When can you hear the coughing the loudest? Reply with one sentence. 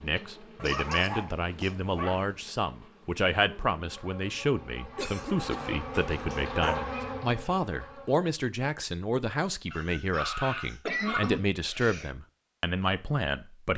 The loudest moment of the coughing is at 11 seconds.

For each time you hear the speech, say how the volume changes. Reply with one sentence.
The speech can be heard from 0.0 to 13.7 s, at a steady volume.